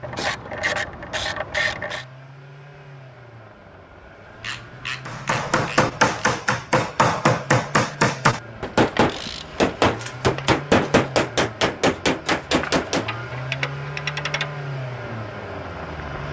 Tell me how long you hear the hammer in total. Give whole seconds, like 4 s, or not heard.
8 s.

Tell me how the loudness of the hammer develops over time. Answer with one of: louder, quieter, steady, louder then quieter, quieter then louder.
steady.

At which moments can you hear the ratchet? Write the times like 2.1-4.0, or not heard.
0.0-2.0, 4.4-6.4, 8.9-10.5, 12.5-14.5.